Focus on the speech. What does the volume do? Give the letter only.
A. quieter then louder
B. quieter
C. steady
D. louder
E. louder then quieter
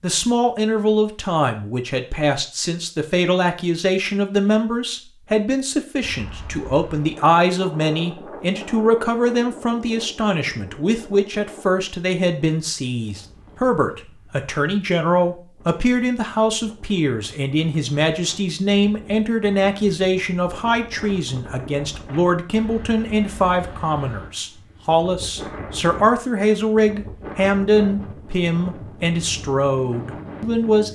C.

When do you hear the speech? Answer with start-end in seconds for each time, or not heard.
0.0-30.9.